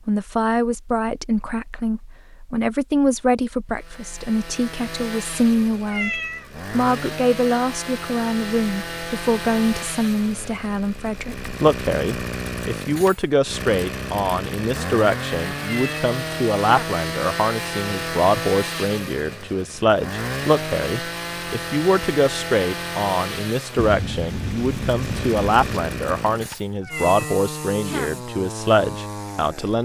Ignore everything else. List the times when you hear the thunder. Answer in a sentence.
The thunder can be heard from 23.8 to 25.8 s.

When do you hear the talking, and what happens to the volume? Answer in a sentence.
You can hear the talking from 0.1 to 29.7 s, at a steady volume.